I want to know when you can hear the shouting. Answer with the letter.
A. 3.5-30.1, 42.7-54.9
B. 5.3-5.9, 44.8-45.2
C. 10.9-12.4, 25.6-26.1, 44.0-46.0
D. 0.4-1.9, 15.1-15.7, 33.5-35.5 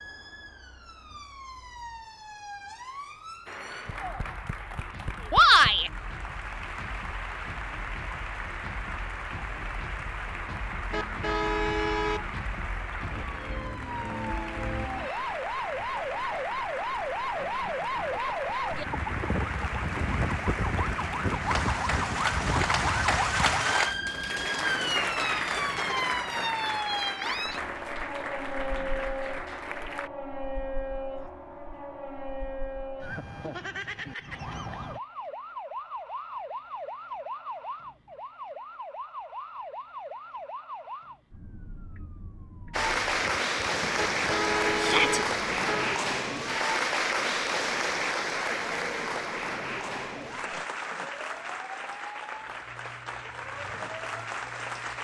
B.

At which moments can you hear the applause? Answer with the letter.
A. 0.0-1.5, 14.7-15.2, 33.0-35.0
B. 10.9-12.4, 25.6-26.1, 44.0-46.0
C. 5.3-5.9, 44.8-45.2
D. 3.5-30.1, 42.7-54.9
D.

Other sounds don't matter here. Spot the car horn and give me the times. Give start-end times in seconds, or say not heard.
10.9-12.4, 25.6-26.1, 44.0-46.0.